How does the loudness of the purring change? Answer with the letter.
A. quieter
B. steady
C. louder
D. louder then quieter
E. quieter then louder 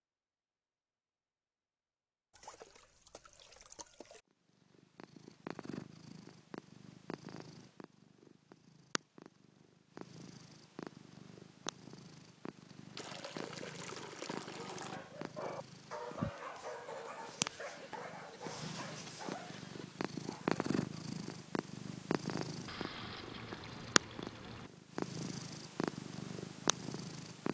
C.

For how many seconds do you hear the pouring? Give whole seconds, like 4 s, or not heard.
6 s.